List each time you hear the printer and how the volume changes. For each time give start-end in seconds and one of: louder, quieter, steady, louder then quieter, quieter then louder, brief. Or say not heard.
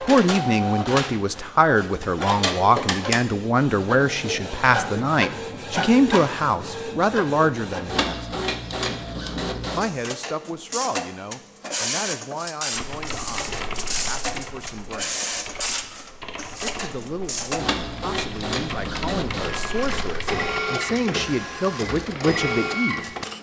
0.0-23.3 steady.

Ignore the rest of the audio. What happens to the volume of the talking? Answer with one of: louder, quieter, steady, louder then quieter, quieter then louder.
quieter then louder.